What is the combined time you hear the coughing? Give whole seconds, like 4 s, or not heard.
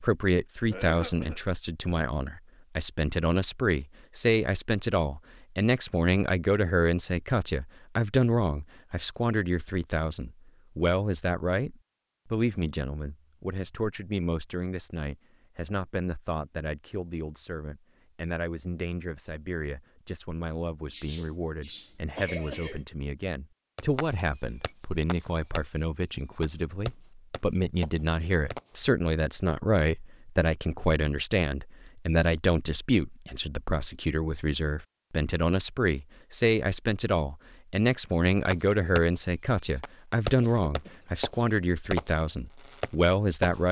3 s.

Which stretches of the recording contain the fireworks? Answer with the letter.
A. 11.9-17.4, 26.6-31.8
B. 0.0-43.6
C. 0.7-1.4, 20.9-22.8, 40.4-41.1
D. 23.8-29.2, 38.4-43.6
D.